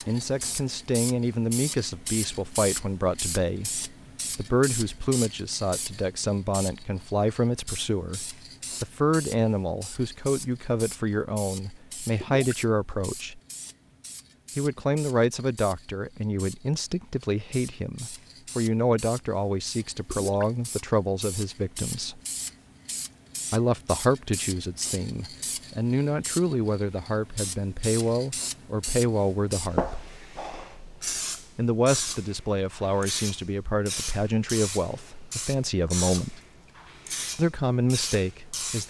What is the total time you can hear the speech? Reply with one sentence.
The speech can be heard for 34 seconds in total.